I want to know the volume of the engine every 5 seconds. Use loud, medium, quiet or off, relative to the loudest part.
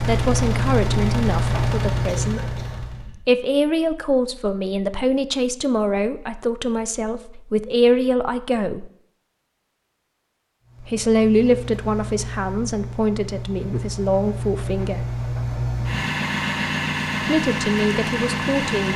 loud, off, medium, loud.